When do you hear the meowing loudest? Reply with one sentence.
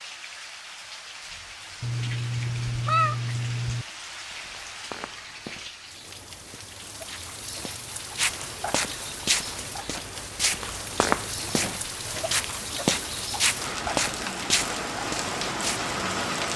The loudest moment of the meowing is at 3 seconds.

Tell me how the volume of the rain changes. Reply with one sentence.
The loudness of the rain goes up.